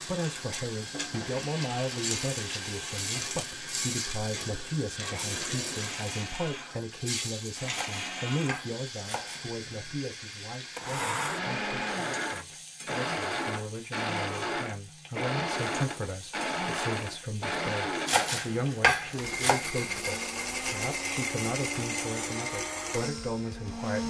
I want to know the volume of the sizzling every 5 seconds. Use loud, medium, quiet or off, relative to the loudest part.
loud, loud, medium, medium, off.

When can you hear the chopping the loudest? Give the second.
19 s.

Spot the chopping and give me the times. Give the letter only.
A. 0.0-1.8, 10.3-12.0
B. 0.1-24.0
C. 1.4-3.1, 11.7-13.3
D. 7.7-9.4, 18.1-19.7
D.